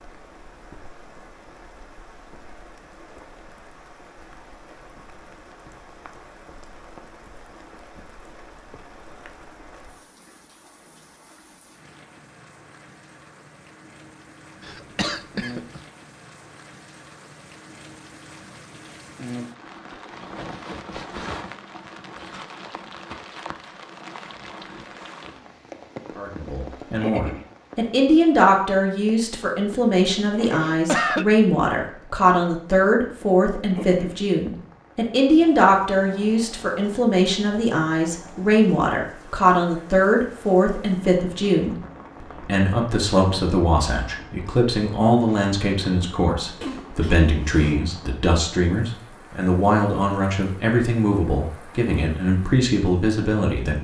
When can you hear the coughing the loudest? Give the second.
31 s.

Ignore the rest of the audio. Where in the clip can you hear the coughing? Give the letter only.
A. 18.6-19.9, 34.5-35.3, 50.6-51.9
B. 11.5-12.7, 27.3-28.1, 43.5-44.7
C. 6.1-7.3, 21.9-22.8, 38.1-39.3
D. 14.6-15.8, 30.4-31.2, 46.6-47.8
D.